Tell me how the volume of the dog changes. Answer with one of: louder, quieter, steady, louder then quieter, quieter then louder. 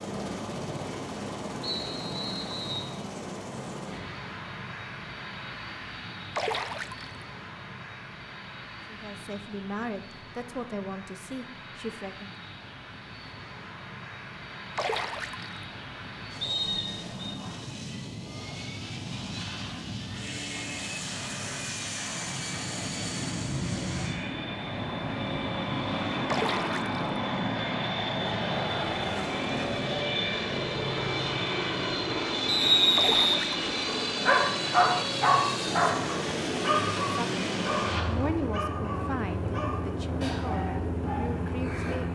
quieter.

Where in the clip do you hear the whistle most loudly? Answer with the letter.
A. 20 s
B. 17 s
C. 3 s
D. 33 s
D.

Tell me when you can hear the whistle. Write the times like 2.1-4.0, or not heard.
1.6-2.9, 16.4-17.4, 32.5-33.4.